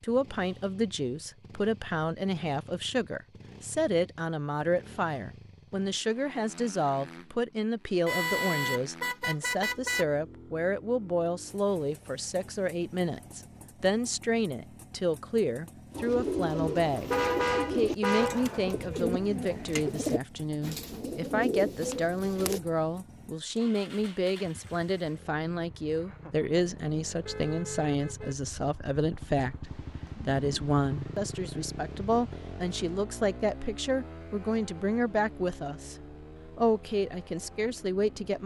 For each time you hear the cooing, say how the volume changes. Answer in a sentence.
The cooing can be heard from 15.9 to 22.6 s, at a steady volume.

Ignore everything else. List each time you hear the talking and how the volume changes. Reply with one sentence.
The talking can be heard from 0.0 to 17.1 s, at a steady volume; from 17.7 to 36.0 s, at a steady volume; and briefly from 36.5 to 38.4 s.